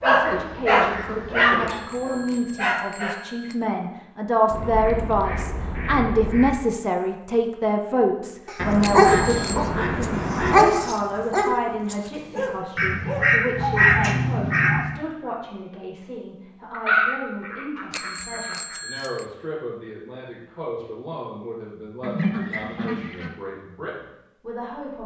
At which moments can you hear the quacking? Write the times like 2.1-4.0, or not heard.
0.2-1.9, 4.5-6.5, 8.6-10.7, 12.8-14.9, 16.7-18.8, 22.0-23.3.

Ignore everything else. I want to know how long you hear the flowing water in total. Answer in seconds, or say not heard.
not heard.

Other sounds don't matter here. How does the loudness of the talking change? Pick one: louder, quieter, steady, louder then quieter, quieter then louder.
quieter.